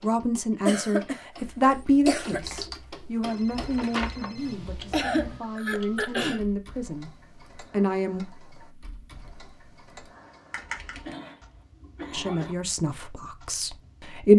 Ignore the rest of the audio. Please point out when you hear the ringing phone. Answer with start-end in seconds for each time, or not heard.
3.2-4.5.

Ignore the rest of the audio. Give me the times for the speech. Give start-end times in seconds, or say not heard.
0.0-8.2, 12.1-14.3.